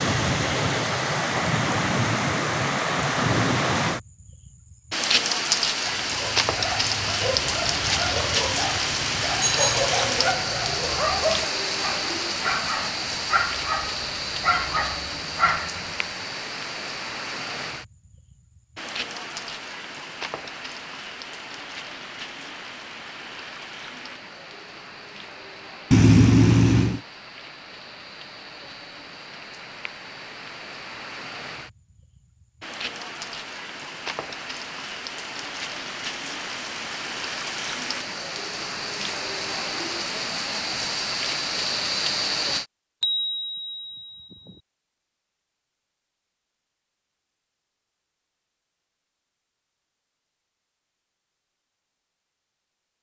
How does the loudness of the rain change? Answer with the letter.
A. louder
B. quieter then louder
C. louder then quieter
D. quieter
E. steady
B.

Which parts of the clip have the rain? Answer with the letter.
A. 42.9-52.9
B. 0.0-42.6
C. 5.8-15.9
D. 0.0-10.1
B.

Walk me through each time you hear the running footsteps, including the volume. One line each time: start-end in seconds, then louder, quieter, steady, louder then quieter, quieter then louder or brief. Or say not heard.
not heard.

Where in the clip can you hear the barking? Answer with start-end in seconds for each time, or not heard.
5.8-15.9.